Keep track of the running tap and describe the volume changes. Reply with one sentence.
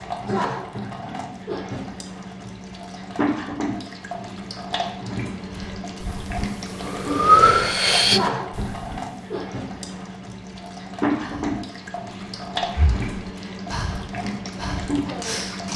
The volume of the running tap stays about the same.